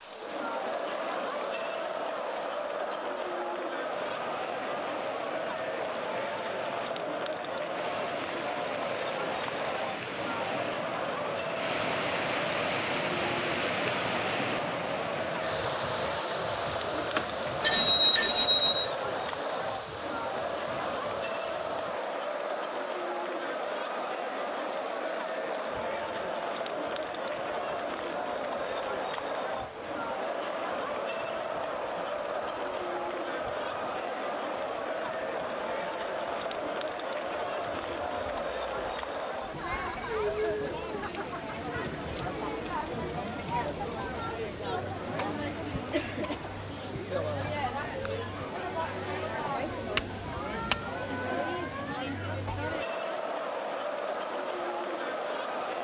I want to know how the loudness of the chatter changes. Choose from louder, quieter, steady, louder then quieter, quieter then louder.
steady.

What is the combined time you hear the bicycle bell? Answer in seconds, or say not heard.
3 s.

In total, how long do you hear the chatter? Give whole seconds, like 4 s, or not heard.
56 s.